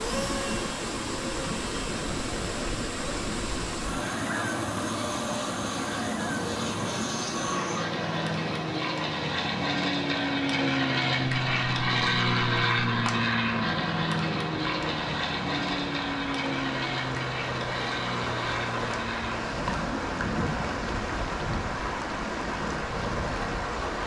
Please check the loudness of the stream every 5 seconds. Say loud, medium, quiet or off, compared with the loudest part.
loud, loud, medium, loud, loud.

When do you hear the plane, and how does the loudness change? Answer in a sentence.
The plane can be heard from 0.0 to 24.0 s, getting louder then quieter.